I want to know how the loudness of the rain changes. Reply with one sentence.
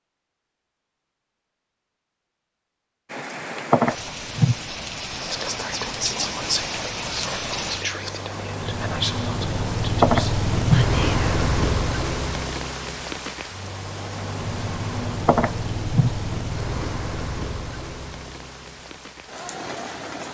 The volume of the rain goes up, then down.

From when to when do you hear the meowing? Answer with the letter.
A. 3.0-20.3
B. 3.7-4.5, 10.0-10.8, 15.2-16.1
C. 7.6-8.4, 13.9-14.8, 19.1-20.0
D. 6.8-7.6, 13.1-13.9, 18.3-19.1
B.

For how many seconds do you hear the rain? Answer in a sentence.
The rain can be heard for 17 seconds in total.